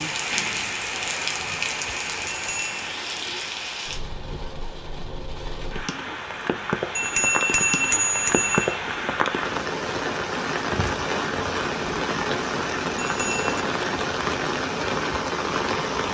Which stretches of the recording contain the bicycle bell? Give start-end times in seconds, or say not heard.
2.3-2.7, 7.0-8.8, 12.9-13.7.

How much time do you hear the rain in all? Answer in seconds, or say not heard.
16 s.